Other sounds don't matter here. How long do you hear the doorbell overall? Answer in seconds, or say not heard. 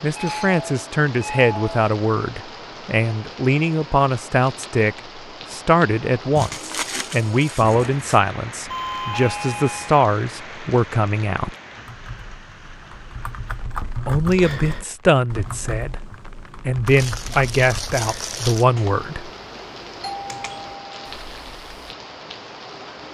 4 s.